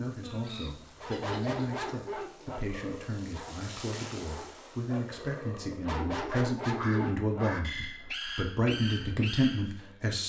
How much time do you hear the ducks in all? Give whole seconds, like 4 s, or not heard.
3 s.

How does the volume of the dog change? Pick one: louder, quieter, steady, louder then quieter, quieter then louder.
quieter then louder.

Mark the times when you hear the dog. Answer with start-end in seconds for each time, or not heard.
0.9-10.1.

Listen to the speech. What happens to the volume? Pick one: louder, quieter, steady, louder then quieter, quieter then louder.
louder.